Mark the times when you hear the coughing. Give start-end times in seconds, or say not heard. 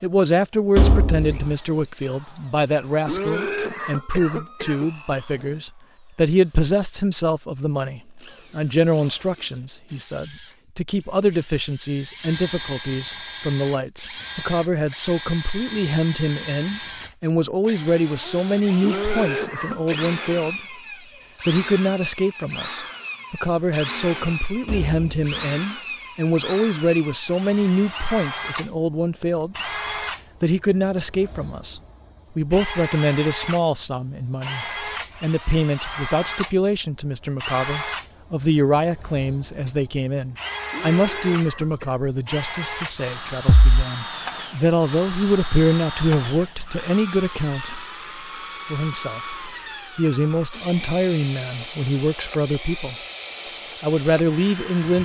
3.0-4.9, 18.8-20.1, 40.7-42.0.